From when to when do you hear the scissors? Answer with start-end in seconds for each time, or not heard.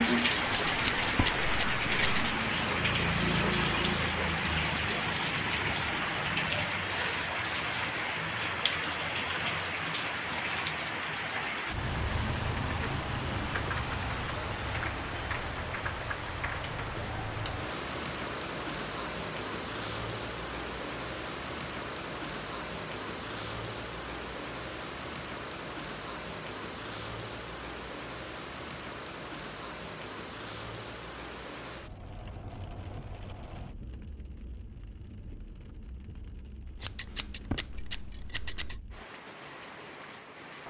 0.5-2.4, 36.8-38.8.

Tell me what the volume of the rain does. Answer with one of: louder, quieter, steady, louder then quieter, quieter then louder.
quieter.